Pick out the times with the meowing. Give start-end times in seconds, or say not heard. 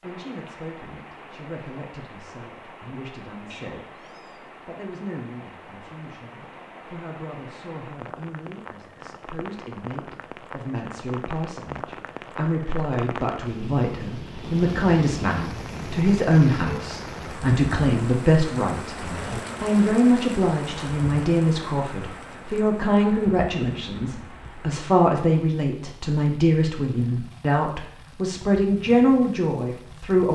3.5-4.4.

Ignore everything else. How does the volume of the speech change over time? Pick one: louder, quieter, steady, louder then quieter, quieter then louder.
louder.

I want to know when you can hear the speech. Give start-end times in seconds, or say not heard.
0.0-3.9, 4.7-30.3.